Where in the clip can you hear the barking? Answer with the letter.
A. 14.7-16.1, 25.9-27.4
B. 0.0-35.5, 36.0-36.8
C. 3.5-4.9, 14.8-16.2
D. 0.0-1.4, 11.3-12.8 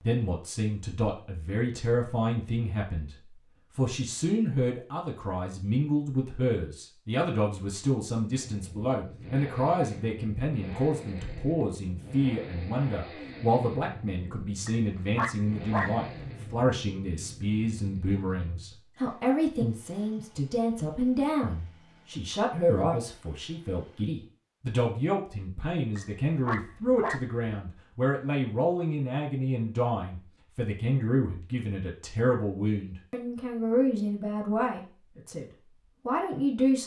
A.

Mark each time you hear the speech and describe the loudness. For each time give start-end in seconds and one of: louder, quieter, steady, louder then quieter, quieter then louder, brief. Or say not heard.
0.0-35.5 steady
36.0-36.8 brief.